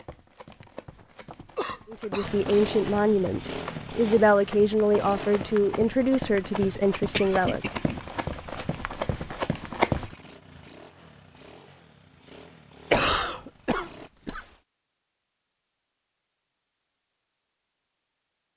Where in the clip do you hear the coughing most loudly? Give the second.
13 s.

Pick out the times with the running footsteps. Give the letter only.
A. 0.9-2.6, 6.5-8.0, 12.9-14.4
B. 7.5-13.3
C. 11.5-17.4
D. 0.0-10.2
D.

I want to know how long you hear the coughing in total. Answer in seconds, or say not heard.
5 s.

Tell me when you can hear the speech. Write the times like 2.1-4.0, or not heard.
1.9-7.8.